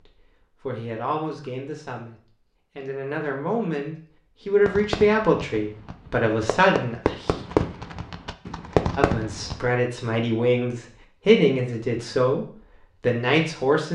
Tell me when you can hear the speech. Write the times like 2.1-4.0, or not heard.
0.6-7.3, 8.9-13.9.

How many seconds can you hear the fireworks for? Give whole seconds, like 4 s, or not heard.
5 s.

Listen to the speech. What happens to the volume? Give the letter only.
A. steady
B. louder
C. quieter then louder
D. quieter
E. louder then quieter
B.